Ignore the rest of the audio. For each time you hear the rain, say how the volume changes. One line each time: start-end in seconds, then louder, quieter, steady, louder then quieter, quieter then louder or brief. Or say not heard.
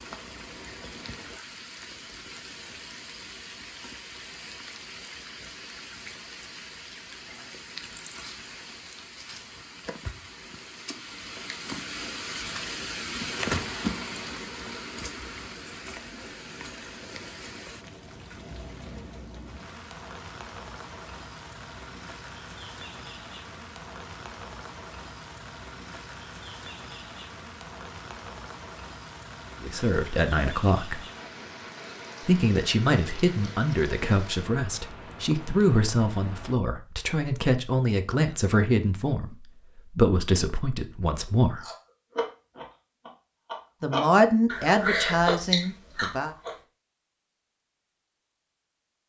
0.0-36.5 louder then quieter.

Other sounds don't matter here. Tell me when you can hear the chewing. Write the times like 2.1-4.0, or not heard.
41.5-46.6.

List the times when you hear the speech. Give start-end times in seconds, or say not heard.
29.6-31.0, 32.2-41.6, 43.8-46.3.